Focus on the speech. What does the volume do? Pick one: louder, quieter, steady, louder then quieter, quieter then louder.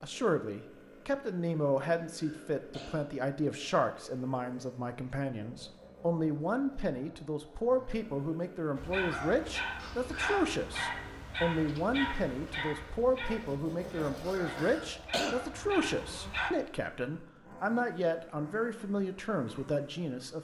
steady.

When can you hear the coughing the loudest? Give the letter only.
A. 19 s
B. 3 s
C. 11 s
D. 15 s
D.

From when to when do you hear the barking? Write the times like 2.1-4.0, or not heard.
8.8-16.6.